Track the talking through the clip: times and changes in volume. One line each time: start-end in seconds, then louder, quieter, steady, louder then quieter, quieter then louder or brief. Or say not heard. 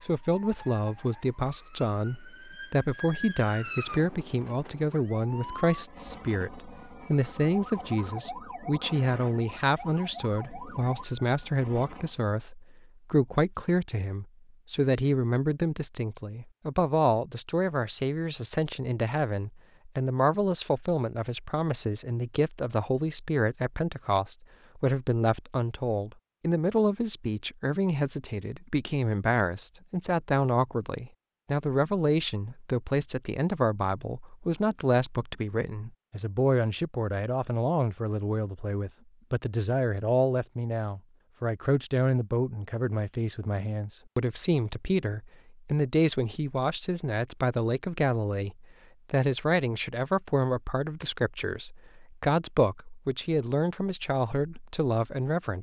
0.0-55.5 steady.